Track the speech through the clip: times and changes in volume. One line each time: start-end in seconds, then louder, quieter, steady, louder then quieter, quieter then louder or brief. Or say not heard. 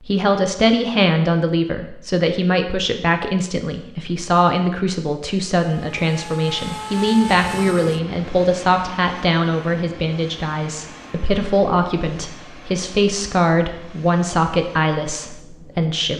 0.0-16.1 steady.